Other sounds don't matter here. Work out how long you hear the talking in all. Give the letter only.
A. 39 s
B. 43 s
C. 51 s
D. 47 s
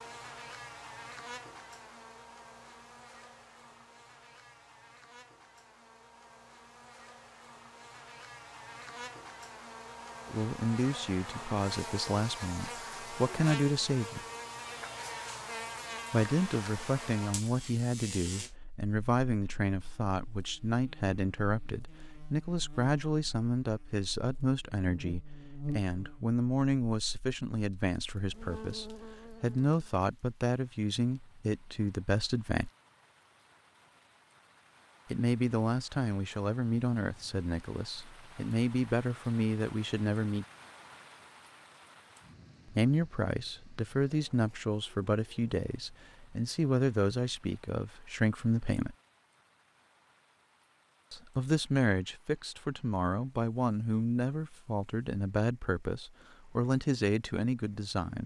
A.